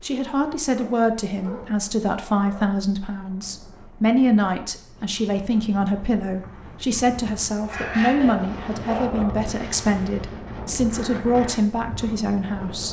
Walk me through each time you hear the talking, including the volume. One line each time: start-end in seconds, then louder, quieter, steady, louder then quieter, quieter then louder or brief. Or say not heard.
0.0-12.8 steady.